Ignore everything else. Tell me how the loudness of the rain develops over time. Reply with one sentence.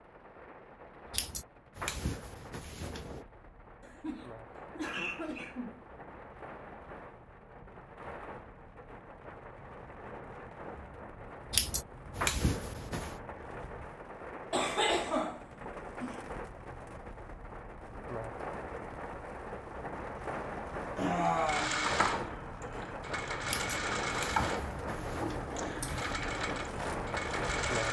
The volume of the rain goes up.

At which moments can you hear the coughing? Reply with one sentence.
You can hear the coughing from 3.8 to 5.8 s, from 14.5 to 16.2 s and from 20.9 to 21.7 s.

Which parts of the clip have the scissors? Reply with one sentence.
You can hear the scissors from 1.1 to 3.2 s, from 11.5 to 13.2 s and from 23.4 to 26.1 s.